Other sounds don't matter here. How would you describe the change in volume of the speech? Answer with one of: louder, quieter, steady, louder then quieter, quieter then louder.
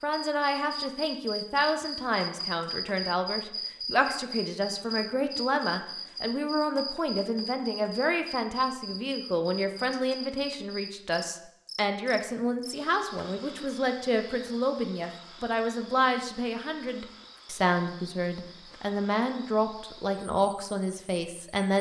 steady.